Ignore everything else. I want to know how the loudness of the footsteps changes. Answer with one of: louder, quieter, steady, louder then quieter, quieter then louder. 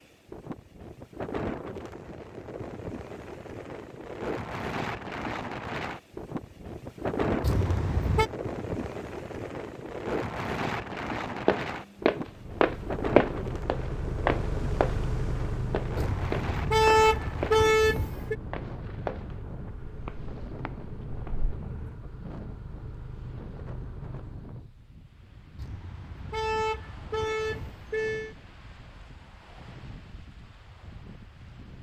quieter.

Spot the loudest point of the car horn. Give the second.
17 s.